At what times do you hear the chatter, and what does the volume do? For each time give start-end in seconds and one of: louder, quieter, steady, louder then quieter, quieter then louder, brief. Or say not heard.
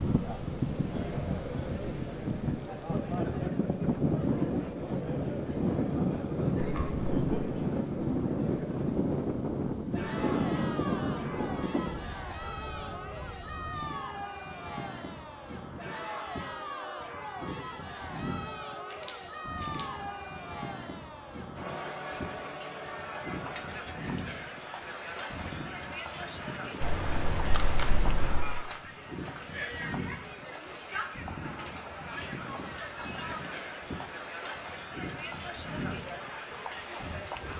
0.0-37.5 steady.